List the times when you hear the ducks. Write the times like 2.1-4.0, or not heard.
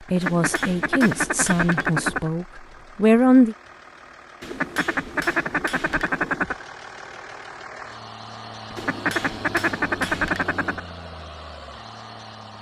0.1-2.3, 4.4-6.7, 8.7-10.8.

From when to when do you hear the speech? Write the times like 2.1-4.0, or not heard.
0.1-3.5.